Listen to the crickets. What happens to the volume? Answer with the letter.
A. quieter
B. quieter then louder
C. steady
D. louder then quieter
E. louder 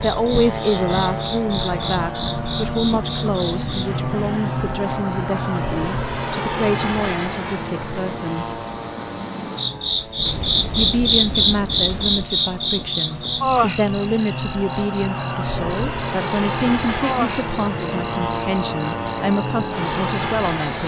D.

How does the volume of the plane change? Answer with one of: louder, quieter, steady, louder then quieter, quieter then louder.
quieter then louder.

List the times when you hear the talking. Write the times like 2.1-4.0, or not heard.
0.0-8.6, 10.8-20.8.